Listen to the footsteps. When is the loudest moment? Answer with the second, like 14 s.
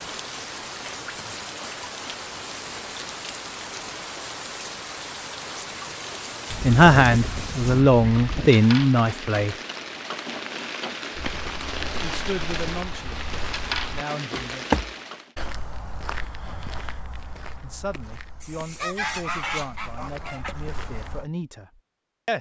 15 s.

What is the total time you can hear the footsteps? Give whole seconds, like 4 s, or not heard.
10 s.